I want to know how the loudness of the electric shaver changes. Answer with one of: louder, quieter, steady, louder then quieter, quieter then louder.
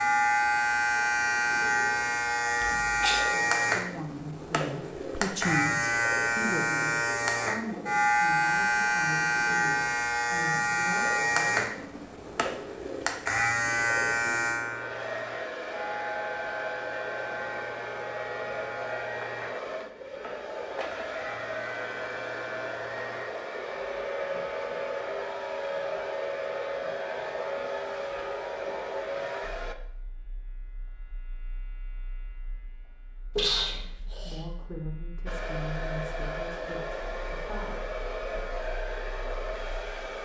quieter.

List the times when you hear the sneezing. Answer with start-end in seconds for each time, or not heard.
2.6-3.3, 33.4-34.5.